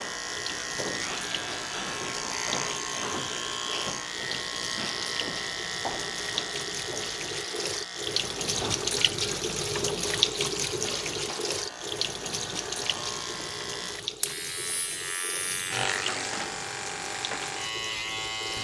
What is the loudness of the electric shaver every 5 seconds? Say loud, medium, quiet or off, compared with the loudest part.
loud, loud, medium, loud.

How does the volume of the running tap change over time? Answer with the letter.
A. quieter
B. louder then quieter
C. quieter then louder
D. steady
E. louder
B.